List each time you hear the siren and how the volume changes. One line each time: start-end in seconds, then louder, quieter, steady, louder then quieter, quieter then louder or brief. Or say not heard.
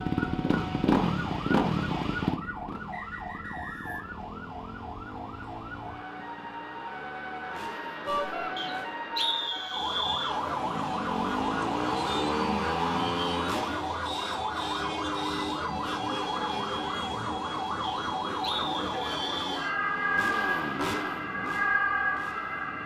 0.0-22.8 louder.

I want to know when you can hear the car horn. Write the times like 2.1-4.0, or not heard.
8.1-8.5.